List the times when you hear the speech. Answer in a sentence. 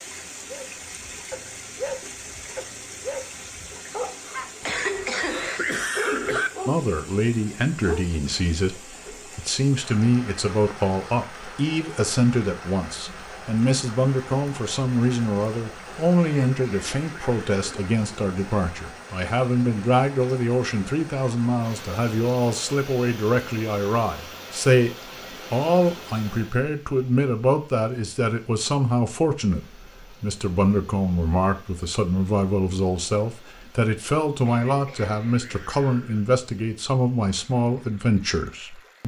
You can hear the speech from 6.7 to 39.0 s.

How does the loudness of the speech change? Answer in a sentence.
The loudness of the speech stays about the same.